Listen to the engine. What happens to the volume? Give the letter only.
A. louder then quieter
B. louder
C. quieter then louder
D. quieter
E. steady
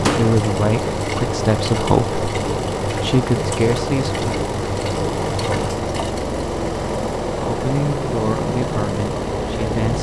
E.